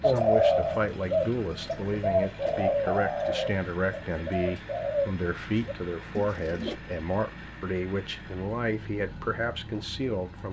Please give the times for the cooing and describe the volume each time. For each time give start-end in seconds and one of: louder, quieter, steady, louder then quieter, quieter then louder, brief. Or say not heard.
0.0-6.8 quieter.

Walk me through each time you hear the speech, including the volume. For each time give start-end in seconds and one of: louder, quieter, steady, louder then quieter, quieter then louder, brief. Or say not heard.
0.0-10.4 steady.